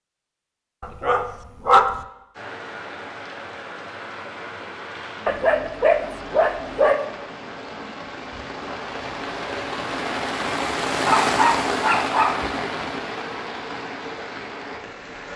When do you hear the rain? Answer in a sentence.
The rain can be heard from 2.3 to 15.3 s.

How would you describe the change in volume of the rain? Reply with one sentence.
The loudness of the rain goes up, then down.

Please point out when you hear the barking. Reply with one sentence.
You can hear the barking from 0.8 to 2.0 s, from 5.2 to 7.0 s and from 11.1 to 12.5 s.